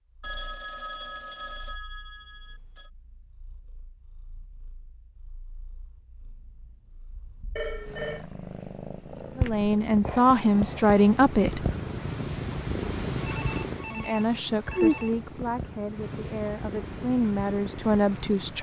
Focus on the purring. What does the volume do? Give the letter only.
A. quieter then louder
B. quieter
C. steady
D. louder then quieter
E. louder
D.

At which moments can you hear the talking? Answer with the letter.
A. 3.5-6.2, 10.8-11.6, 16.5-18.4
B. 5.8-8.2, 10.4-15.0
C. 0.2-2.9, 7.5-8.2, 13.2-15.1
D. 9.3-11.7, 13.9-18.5
D.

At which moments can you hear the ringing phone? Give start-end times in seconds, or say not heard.
0.2-2.9, 7.5-8.2, 13.2-15.1.